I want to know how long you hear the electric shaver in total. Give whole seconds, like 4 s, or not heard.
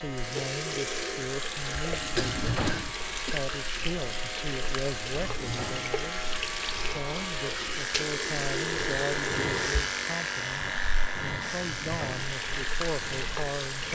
14 s.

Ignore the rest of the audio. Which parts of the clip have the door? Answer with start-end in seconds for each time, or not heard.
1.9-3.0, 5.0-6.0, 11.4-12.3.